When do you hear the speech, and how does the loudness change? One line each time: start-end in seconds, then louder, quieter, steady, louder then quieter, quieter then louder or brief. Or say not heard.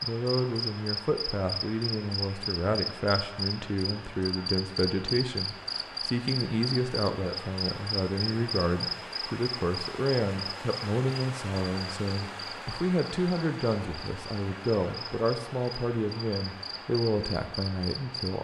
0.0-18.3 steady.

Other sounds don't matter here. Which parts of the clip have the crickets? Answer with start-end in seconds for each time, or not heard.
0.0-18.3.